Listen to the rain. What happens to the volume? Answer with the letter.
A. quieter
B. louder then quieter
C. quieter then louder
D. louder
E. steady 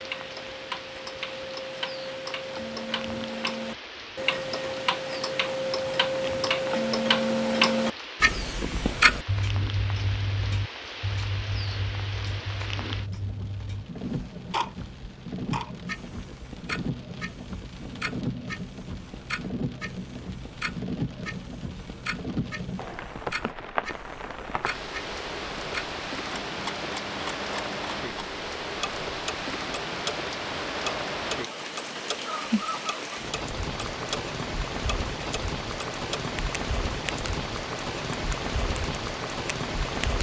D.